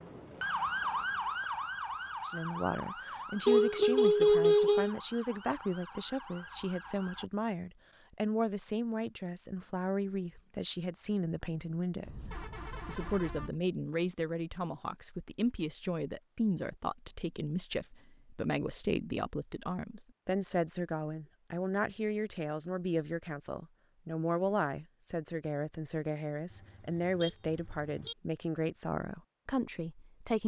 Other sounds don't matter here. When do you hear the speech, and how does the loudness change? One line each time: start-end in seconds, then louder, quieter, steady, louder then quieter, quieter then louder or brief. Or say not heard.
2.2-30.4 steady.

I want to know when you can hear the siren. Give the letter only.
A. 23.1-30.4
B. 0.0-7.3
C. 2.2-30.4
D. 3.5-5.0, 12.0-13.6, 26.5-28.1
B.